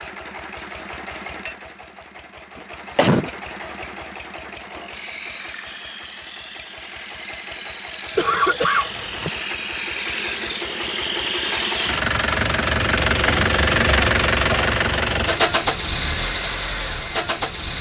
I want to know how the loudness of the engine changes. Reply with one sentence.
The loudness of the engine goes up.